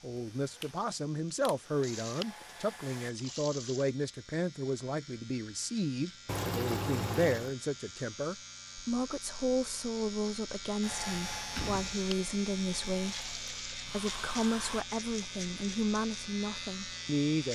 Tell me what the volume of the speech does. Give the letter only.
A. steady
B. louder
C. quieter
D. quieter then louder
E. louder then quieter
A.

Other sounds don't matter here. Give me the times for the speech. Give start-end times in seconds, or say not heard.
0.0-17.5.